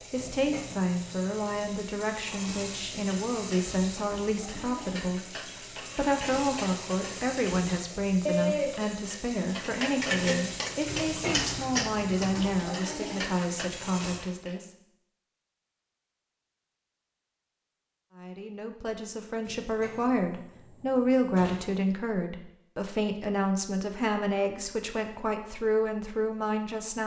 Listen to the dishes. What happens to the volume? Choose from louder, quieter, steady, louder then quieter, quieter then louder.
louder then quieter.